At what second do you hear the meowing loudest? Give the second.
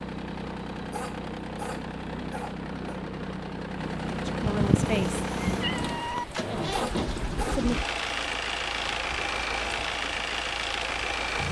5 s.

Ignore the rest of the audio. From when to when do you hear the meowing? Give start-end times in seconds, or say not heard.
4.4-6.2.